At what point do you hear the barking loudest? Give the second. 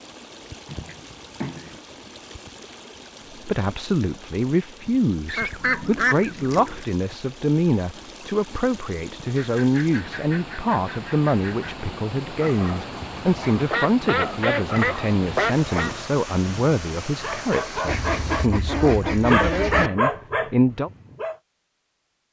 20 s.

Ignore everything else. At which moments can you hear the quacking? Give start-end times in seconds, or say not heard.
0.7-1.8, 5.2-6.8, 9.3-11.8, 13.7-15.9, 17.9-19.9.